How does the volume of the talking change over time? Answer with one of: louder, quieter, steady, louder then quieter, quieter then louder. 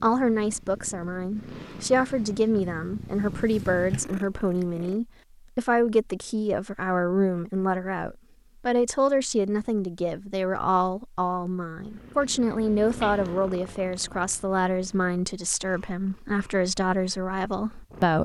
steady.